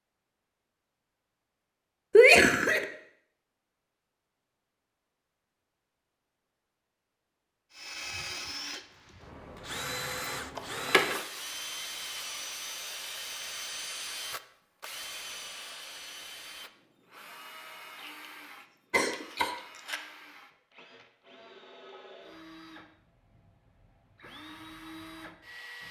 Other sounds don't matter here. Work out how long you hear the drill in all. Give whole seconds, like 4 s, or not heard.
18 s.